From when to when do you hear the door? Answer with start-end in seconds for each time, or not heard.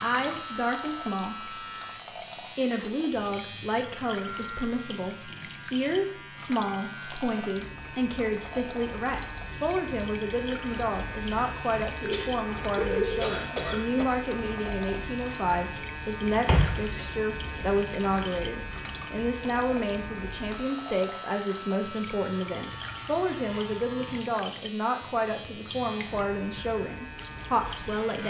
16.4-17.9.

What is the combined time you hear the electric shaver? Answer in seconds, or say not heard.
28 s.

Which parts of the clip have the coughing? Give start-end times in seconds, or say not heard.
12.0-14.1.